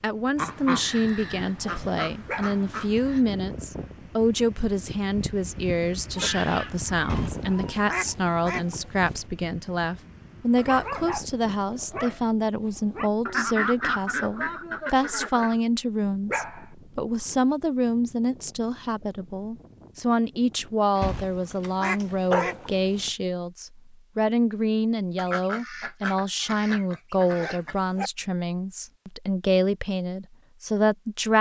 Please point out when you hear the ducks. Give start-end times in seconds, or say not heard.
0.3-3.2, 7.0-9.2, 13.2-15.6, 21.0-23.1, 25.1-27.8.